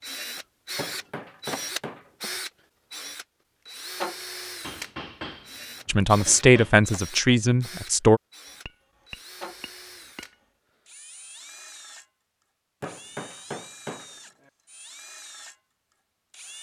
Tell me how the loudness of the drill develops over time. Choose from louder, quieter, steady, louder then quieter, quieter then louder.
quieter.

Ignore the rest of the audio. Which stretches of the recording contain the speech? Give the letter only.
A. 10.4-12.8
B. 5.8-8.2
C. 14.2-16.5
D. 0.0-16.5
B.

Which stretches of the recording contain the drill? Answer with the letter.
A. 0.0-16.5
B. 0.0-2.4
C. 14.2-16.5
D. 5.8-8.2
A.